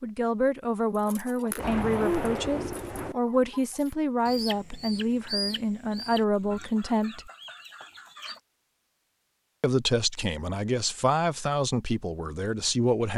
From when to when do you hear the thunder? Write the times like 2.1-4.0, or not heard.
1.6-3.1.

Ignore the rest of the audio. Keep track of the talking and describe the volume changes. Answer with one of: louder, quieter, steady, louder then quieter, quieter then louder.
steady.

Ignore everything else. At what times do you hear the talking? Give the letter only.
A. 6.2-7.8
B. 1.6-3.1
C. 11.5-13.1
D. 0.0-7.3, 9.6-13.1
D.